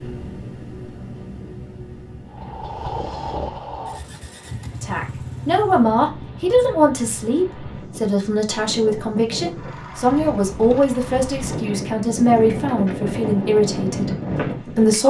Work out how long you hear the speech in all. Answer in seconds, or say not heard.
10 s.